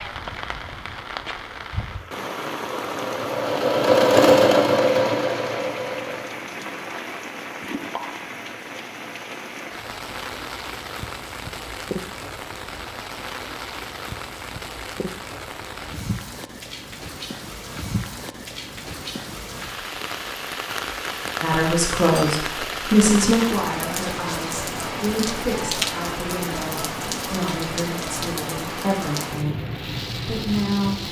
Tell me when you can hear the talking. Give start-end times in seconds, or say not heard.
21.4-31.0.